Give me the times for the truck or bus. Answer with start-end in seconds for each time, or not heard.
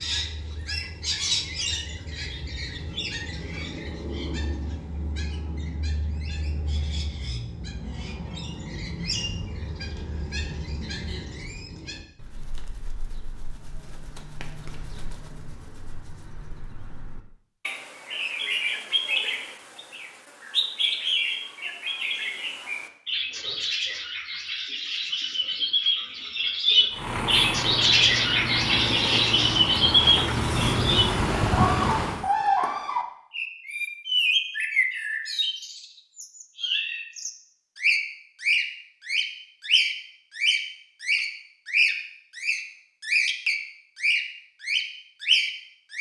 26.9-32.3.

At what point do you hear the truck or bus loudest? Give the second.
31 s.